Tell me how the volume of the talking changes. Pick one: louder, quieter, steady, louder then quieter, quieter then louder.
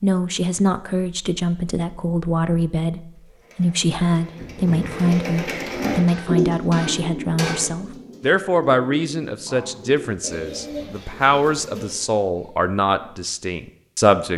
steady.